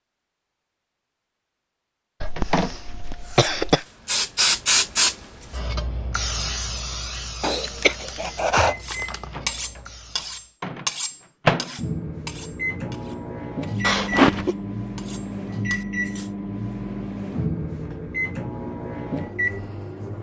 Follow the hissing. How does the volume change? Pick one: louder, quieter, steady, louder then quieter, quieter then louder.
quieter.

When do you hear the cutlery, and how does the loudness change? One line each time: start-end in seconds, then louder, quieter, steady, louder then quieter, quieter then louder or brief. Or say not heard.
8.8-16.3 quieter then louder.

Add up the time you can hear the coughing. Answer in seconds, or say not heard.
4 s.